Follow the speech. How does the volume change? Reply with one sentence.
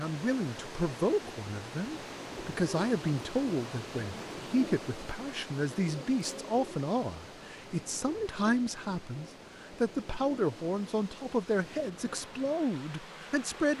The volume of the speech stays about the same.